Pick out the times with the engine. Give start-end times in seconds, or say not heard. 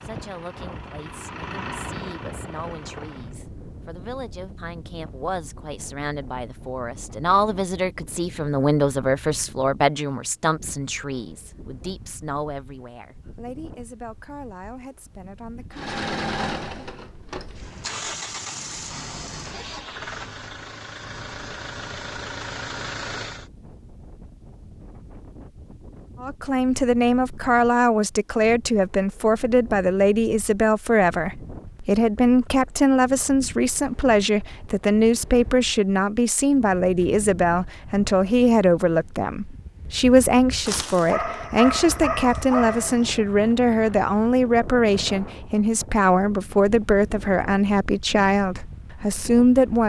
0.0-3.4, 15.7-23.5.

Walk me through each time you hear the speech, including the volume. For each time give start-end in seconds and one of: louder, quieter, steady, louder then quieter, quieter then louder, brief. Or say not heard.
0.0-15.9 louder then quieter
26.2-49.8 steady.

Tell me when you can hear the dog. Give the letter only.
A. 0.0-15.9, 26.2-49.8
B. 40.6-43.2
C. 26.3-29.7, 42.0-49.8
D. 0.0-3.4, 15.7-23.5
B.